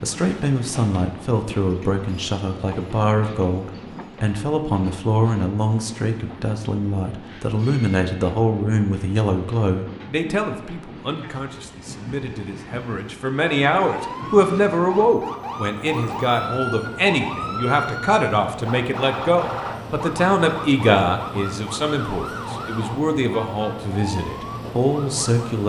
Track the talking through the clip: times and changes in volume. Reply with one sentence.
You can hear the talking from 0.0 to 25.6 s, at a steady volume.